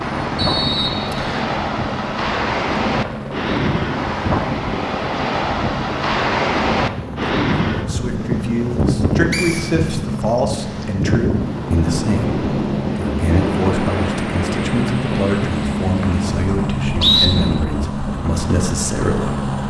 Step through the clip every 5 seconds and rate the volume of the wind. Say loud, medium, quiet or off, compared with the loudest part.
loud, loud, loud, medium.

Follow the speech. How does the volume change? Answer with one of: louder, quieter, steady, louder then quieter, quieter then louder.
steady.